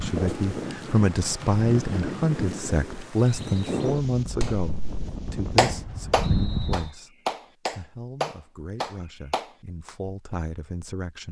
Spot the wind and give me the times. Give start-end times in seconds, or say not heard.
0.0-6.9.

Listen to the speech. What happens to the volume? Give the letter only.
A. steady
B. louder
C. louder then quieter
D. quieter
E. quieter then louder
D.